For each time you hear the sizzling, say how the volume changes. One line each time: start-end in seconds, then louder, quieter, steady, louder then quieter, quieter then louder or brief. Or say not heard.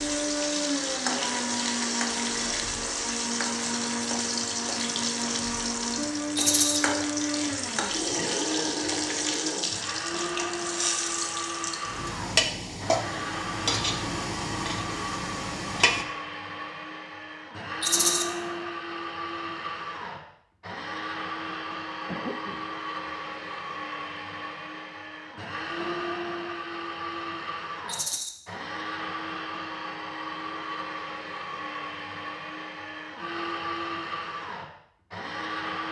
0.0-16.1 steady.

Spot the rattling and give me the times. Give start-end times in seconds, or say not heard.
6.3-6.8, 17.8-18.2, 27.9-28.3.